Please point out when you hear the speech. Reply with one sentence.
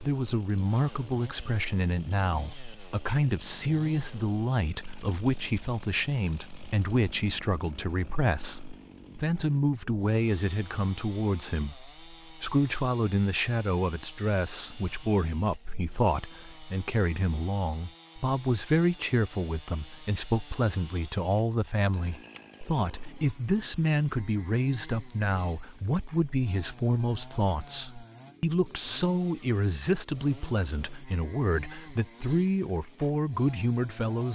You can hear the speech from 0.0 to 34.2 s.